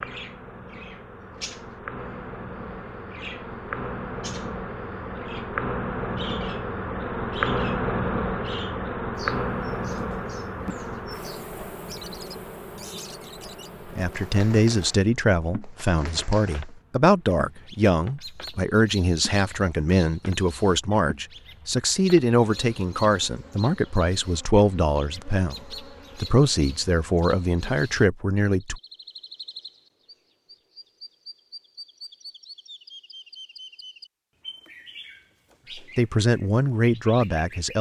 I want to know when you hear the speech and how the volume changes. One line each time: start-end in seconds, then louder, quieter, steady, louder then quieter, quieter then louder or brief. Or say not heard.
13.8-28.8 steady
35.8-37.7 brief.